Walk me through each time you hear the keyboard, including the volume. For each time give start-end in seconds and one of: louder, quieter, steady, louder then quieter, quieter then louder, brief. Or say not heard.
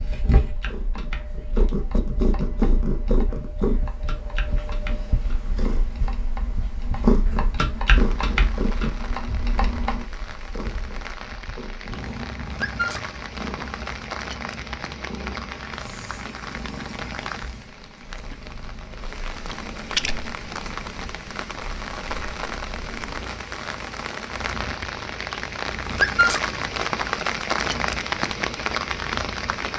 0.6-10.1 louder.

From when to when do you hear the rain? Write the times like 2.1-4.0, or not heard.
7.9-29.7.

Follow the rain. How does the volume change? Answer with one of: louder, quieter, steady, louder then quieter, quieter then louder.
louder.